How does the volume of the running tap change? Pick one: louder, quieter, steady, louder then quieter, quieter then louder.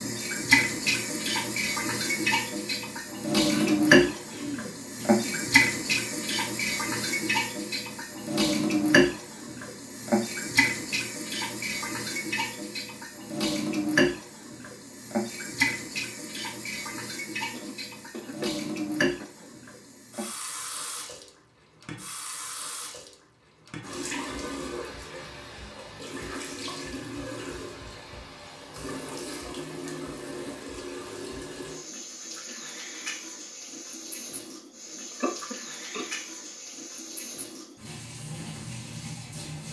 quieter.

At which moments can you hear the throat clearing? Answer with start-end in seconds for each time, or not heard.
3.5-5.4, 17.5-19.5, 35.2-36.0.